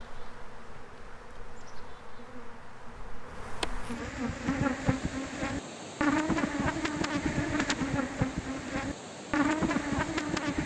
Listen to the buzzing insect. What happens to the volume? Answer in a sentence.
The volume of the buzzing insect goes up.